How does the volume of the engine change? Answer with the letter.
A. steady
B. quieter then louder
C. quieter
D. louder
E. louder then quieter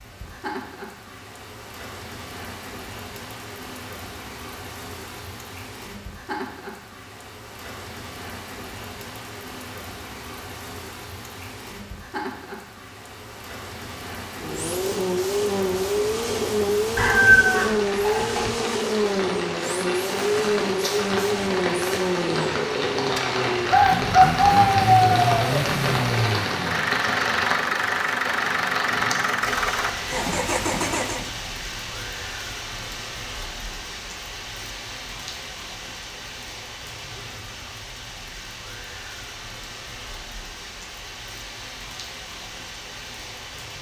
A.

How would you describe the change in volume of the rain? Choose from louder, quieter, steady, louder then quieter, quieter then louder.
louder then quieter.